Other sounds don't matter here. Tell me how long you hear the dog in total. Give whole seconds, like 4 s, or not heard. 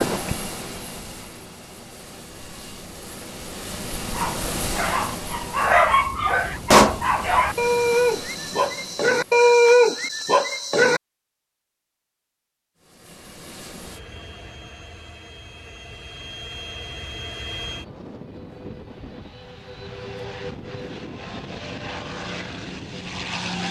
7 s.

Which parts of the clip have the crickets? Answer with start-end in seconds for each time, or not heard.
not heard.